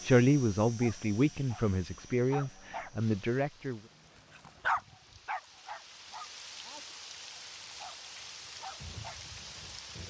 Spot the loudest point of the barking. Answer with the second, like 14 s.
5 s.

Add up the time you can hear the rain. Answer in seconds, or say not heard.
7 s.